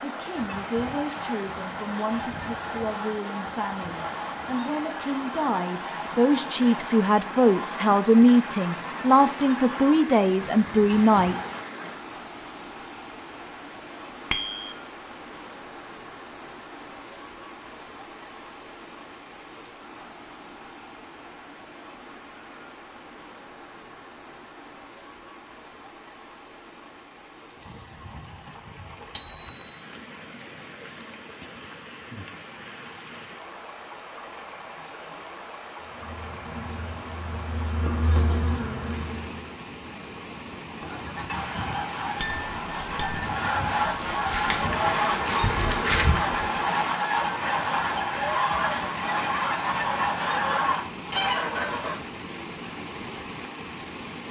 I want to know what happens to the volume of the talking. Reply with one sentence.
The loudness of the talking goes up.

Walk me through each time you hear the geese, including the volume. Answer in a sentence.
The geese can be heard from 0.3 to 11.7 s, at a steady volume; and from 40.8 to 52.0 s, getting louder.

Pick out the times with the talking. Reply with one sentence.
The talking can be heard from 0.0 to 11.3 s.